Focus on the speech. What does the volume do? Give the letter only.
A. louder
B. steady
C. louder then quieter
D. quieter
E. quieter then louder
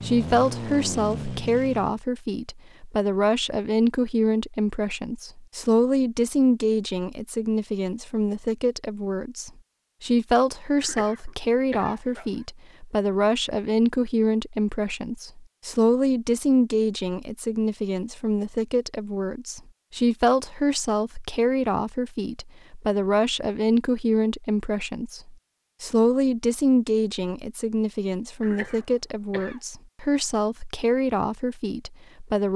B.